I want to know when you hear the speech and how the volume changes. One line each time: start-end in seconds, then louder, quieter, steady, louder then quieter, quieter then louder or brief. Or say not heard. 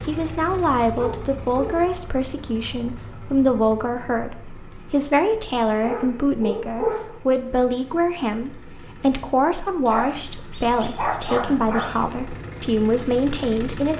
0.1-13.9 steady.